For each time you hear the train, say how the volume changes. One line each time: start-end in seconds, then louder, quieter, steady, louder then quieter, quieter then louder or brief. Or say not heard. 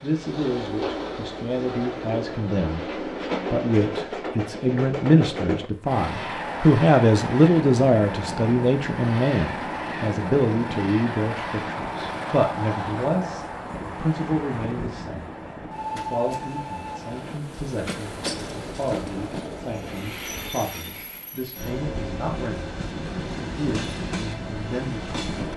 0.0-25.5 steady.